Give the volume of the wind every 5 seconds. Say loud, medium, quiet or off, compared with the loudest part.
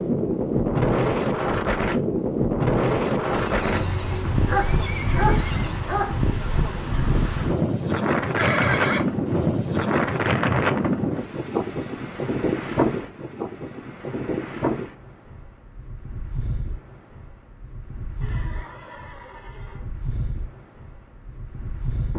loud, loud, loud, quiet, quiet.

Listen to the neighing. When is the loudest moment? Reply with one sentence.
The volume of the neighing peaks at 9 seconds.